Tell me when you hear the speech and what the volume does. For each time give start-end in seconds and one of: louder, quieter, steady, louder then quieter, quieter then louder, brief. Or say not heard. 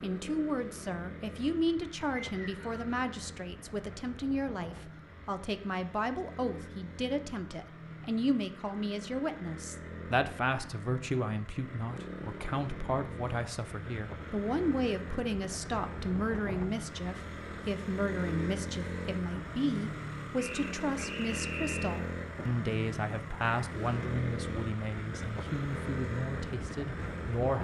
0.0-27.5 steady.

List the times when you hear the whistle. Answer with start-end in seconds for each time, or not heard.
2.2-2.9, 20.4-22.0.